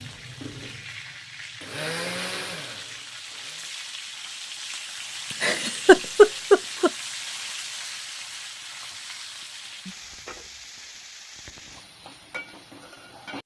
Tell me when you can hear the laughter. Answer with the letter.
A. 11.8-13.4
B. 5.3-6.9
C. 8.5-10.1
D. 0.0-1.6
B.